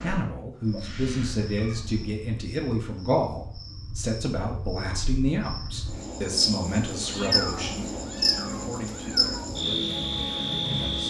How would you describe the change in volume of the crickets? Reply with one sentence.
The volume of the crickets goes up.